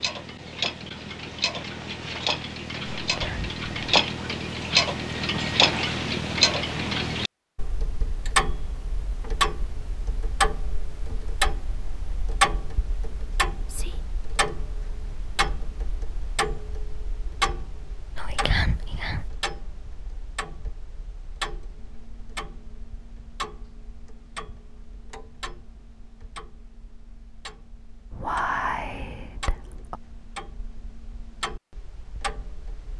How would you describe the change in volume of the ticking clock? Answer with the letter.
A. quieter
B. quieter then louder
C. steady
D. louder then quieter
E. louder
A.